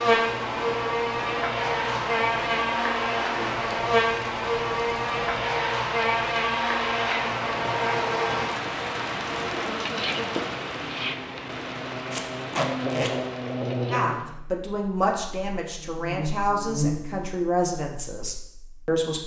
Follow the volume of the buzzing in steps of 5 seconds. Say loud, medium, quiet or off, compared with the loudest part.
loud, loud, medium, medium.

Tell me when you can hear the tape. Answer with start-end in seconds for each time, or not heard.
12.1-13.1.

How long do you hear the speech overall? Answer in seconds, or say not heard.
5 s.